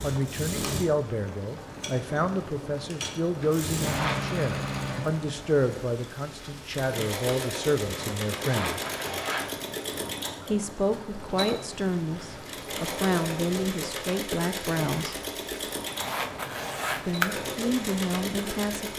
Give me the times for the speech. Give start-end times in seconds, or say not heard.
0.0-8.8, 10.4-15.2, 17.1-18.9.